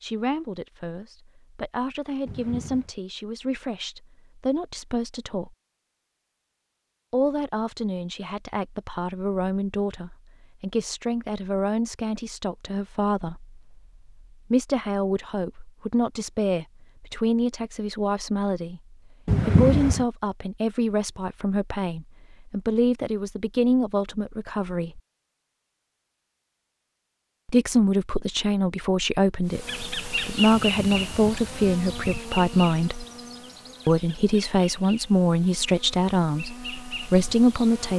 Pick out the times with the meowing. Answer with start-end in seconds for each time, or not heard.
2.2-2.9, 19.2-20.1, 30.6-32.2.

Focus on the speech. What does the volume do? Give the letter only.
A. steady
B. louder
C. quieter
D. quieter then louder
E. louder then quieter
B.